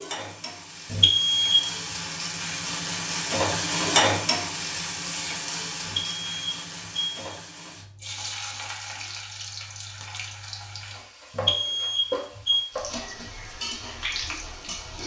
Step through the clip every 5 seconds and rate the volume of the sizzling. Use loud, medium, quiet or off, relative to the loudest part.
loud, medium, medium.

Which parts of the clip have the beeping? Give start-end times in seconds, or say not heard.
0.9-1.7, 5.8-7.2, 11.3-12.7.